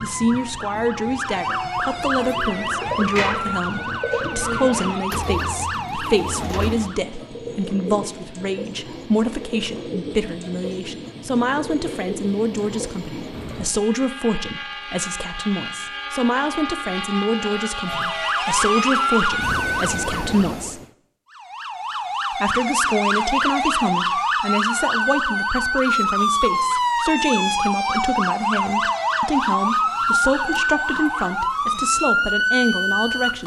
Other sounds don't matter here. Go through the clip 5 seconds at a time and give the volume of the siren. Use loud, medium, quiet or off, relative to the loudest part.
medium, medium, off, loud, loud, loud, loud.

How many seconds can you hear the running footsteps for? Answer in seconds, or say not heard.
not heard.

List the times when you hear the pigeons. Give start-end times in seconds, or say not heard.
2.1-13.7.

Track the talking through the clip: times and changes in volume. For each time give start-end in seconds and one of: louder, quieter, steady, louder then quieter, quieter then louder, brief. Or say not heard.
0.0-20.8 steady
22.3-33.4 steady.